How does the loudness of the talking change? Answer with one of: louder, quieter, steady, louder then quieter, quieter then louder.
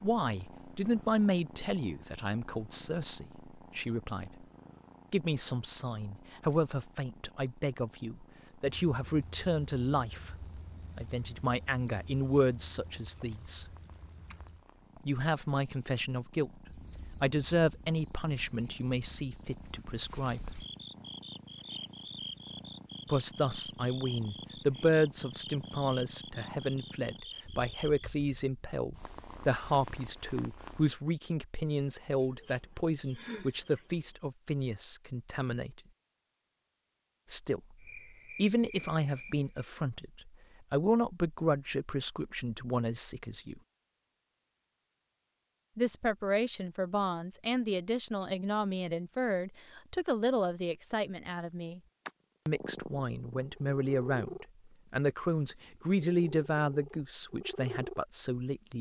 steady.